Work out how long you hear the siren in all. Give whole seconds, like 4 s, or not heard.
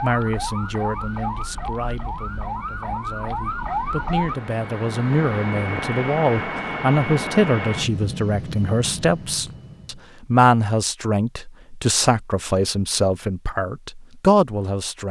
4 s.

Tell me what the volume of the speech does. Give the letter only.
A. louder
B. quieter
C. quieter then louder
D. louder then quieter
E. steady
A.